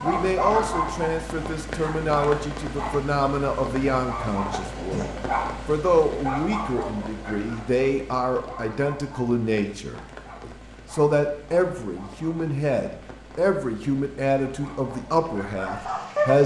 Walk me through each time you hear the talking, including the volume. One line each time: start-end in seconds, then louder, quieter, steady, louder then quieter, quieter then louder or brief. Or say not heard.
0.0-16.4 steady.